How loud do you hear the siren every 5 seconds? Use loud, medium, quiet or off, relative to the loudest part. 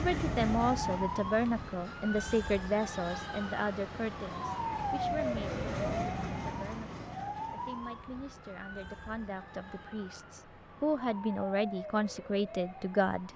loud, loud, medium.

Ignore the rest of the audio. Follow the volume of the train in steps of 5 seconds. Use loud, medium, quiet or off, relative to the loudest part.
loud, loud, off.